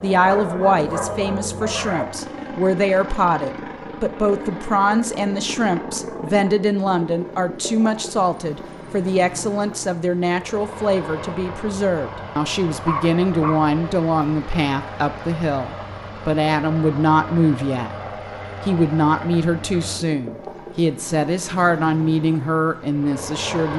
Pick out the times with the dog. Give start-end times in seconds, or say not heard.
0.1-2.0, 12.8-13.7.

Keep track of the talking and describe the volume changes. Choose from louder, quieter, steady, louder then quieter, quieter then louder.
steady.